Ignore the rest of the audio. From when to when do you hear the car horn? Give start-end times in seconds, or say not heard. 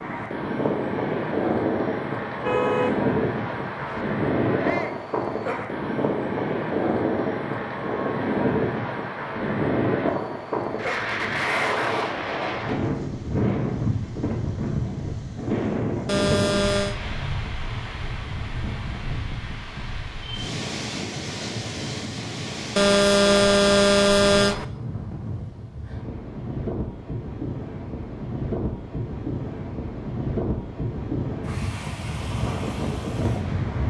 2.4-4.0, 16.1-16.9, 22.8-24.6.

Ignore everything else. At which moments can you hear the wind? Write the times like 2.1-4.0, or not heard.
0.0-33.8.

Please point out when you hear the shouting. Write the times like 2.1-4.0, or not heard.
4.5-5.0.